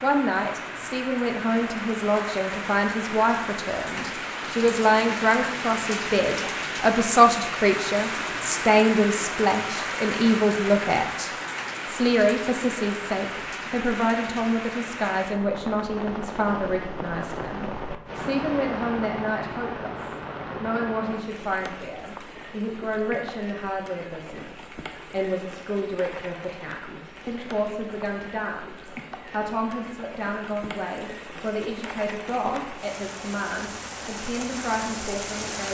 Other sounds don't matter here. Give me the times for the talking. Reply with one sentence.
The talking can be heard from 0.0 to 35.6 s.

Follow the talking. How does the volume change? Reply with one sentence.
The loudness of the talking goes down.